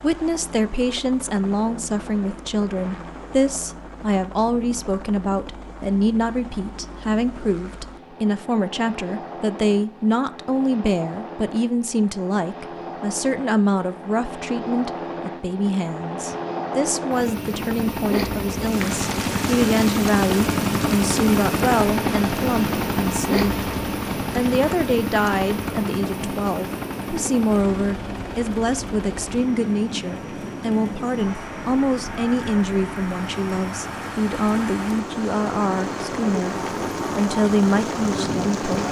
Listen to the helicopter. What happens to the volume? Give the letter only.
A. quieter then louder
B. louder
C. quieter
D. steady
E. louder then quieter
E.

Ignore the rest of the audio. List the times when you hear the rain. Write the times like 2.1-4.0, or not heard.
18.6-38.8.